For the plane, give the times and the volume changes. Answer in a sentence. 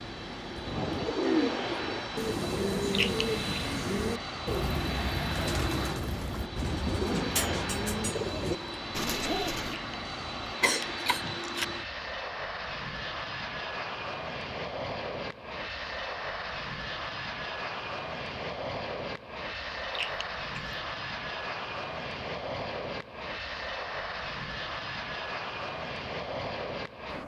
The plane can be heard from 0.0 to 27.2 s, at a steady volume.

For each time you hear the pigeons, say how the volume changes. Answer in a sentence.
You can hear the pigeons from 0.6 to 9.8 s, at a steady volume.